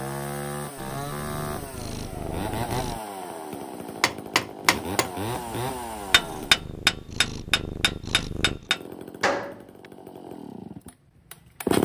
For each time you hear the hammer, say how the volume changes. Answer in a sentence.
The hammer can be heard from 4.0 to 9.6 s, getting louder then quieter.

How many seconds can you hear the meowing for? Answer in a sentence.
The meowing can be heard for 5 seconds in total.